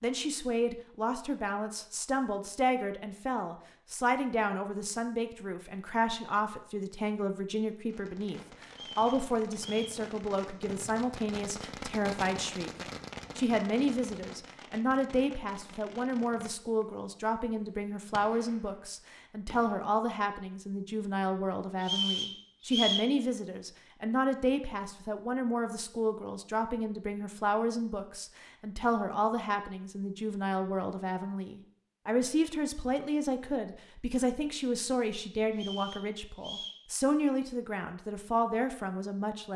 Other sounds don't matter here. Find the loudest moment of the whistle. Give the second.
23 s.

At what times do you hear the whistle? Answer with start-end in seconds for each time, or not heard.
8.7-10.0, 21.8-23.1, 35.5-36.9.